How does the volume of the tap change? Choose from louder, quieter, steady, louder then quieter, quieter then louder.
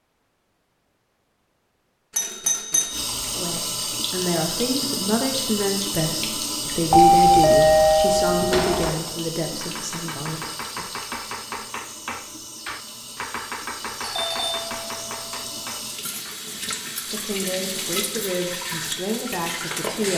quieter then louder.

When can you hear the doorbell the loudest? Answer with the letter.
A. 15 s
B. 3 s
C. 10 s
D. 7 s
D.